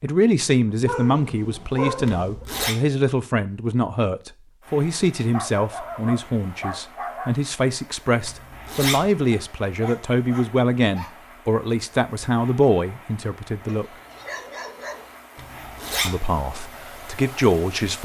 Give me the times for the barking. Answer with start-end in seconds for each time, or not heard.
0.8-2.5, 5.3-7.3, 9.3-11.2, 13.7-15.2.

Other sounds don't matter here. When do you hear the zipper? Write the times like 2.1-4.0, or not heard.
2.0-2.8, 8.2-9.1, 15.3-16.2.